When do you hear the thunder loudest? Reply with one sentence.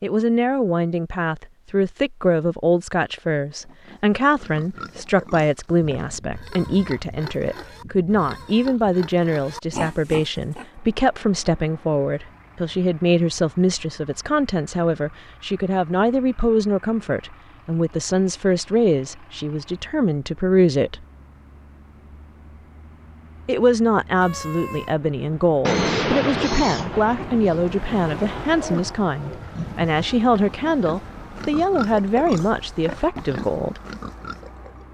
The volume of the thunder peaks at 26 seconds.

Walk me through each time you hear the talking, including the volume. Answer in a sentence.
You can hear the talking from 0.0 to 21.1 s, at a steady volume; and from 23.4 to 33.8 s, at a steady volume.